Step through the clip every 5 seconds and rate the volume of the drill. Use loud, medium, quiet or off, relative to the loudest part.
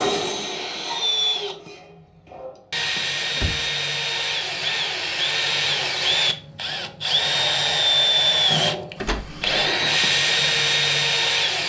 medium, loud, loud.